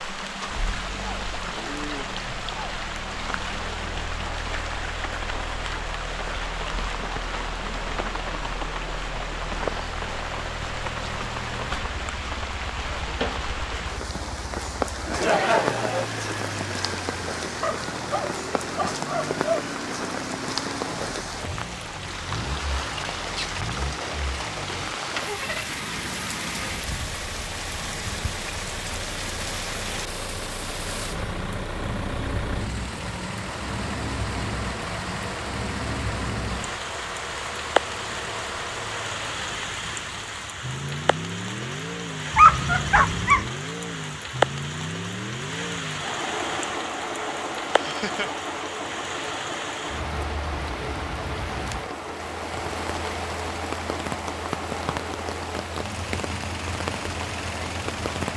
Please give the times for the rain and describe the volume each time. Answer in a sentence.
The rain can be heard from 0.0 to 58.3 s, at a steady volume.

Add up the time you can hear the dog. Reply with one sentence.
You can hear the dog for 3 seconds altogether.